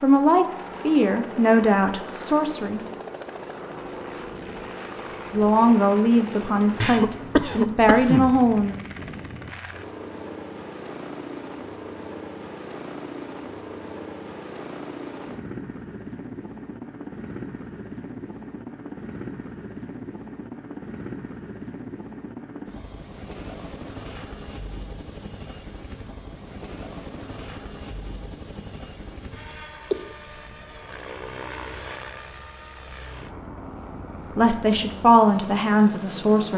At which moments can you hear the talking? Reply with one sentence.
The talking can be heard from 0.0 to 2.9 s, from 5.3 to 8.8 s and from 34.4 to 36.5 s.